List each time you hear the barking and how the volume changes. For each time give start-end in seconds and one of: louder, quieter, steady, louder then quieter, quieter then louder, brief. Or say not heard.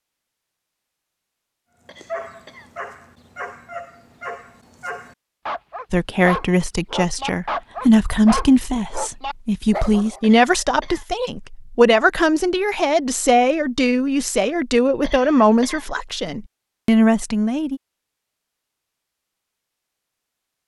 2.0-10.2 louder.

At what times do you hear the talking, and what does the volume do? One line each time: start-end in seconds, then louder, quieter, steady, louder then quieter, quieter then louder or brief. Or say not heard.
5.9-17.8 steady.